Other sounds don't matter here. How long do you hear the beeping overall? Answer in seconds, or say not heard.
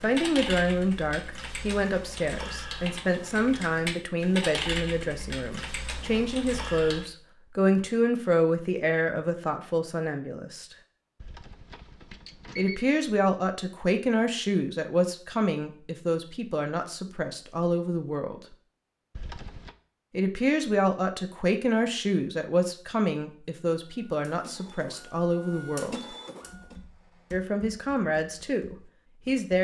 2 s.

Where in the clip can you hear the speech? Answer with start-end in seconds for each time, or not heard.
0.0-10.8, 12.6-18.4, 20.1-26.0, 27.3-29.6.